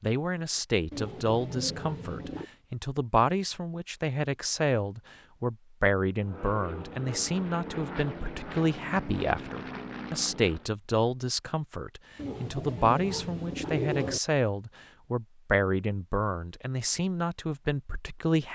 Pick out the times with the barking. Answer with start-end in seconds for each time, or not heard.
not heard.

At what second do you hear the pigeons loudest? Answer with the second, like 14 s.
14 s.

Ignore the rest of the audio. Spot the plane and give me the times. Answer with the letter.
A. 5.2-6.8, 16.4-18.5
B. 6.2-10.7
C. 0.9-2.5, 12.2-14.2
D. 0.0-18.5
B.